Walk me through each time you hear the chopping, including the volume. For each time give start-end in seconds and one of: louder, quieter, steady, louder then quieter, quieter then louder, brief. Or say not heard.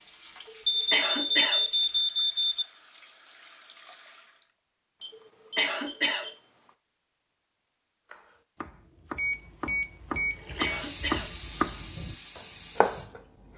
8.1-13.5 louder.